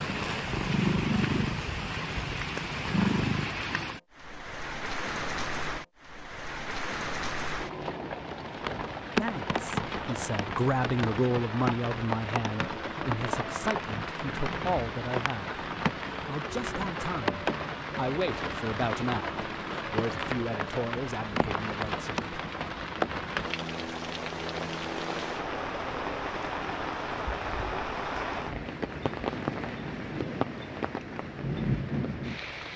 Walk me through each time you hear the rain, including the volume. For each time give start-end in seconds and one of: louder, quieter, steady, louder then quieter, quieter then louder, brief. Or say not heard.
0.0-32.7 steady.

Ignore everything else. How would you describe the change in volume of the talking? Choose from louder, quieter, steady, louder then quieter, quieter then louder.
quieter.